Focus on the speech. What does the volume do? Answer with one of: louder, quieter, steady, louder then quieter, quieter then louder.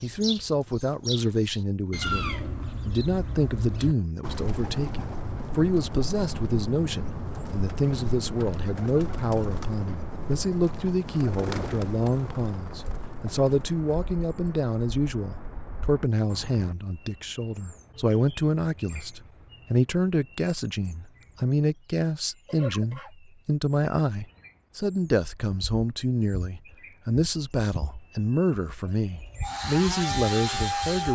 steady.